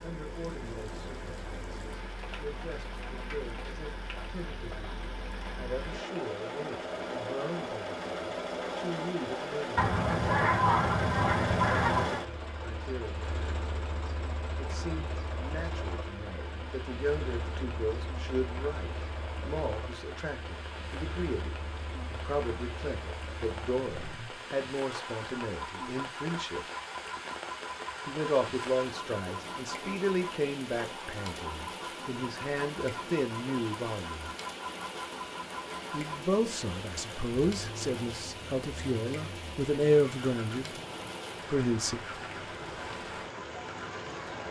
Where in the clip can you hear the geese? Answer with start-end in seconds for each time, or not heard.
9.8-12.2.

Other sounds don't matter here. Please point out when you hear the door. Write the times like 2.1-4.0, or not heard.
not heard.